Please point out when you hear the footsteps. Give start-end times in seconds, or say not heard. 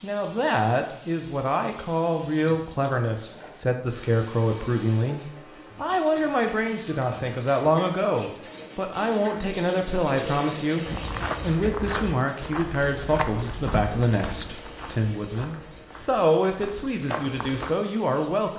10.8-17.8.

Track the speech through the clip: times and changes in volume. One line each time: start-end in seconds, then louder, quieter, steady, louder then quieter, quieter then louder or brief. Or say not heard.
0.0-18.5 steady.